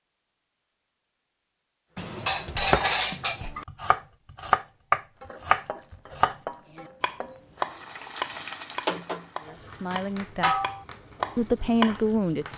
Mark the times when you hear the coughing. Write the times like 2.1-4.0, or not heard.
not heard.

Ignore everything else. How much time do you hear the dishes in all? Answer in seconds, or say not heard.
2 s.